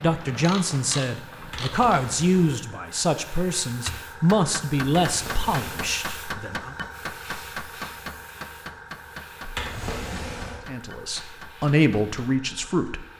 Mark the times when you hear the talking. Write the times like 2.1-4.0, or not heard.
0.0-6.8, 10.7-13.1.